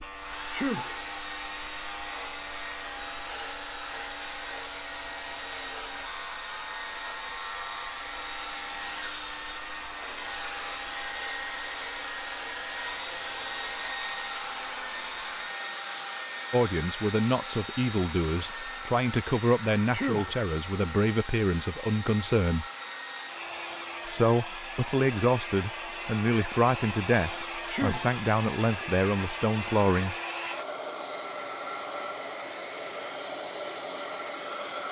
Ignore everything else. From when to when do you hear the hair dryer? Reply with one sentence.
The hair dryer can be heard from 0.1 to 34.8 s.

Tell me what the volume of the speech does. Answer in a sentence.
The volume of the speech stays about the same.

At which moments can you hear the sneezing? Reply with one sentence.
The sneezing can be heard from 0.5 to 1.0 s, from 19.9 to 20.4 s and from 27.7 to 28.2 s.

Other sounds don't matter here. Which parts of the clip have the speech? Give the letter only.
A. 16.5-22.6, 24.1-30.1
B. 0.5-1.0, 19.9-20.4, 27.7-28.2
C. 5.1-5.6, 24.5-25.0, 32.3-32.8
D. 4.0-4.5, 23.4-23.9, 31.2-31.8
A.